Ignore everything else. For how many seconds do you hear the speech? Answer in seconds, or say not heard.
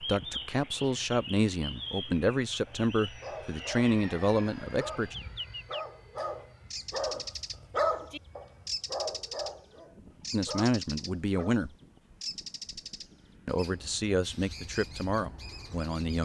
9 s.